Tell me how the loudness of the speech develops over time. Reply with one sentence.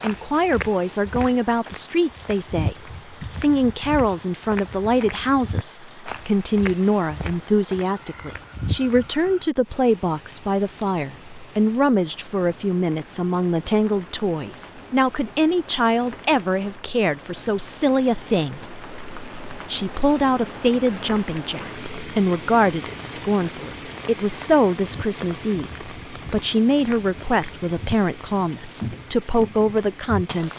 The loudness of the speech stays about the same.